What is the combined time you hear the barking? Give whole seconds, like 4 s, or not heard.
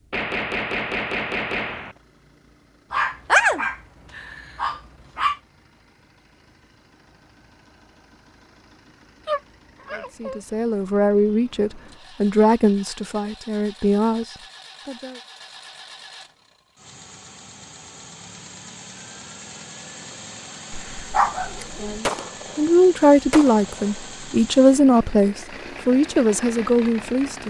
5 s.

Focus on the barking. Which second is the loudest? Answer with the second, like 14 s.
3 s.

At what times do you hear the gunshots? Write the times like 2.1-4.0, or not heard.
0.1-1.9, 21.6-24.1.